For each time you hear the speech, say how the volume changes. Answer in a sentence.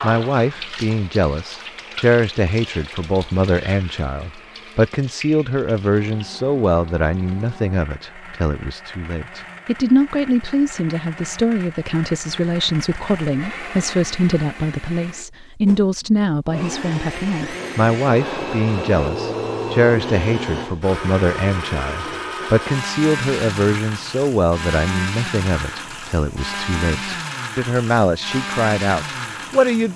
The speech can be heard from 0.0 to 29.9 s, at a steady volume.